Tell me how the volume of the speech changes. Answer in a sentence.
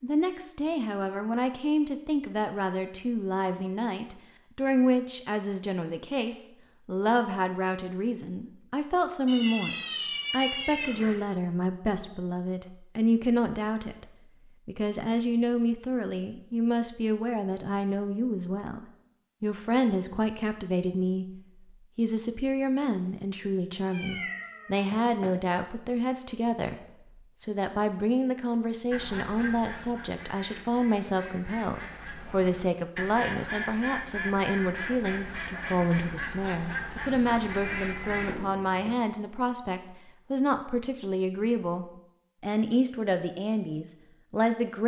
The loudness of the speech stays about the same.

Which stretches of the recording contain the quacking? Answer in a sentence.
You can hear the quacking from 28.9 to 38.4 s.